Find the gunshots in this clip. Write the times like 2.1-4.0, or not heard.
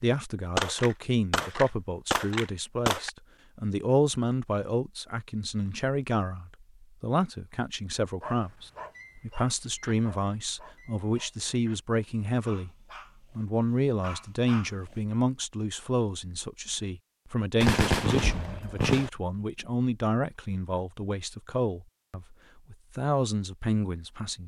0.6-3.1, 17.6-19.1.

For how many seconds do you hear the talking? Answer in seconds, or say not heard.
24 s.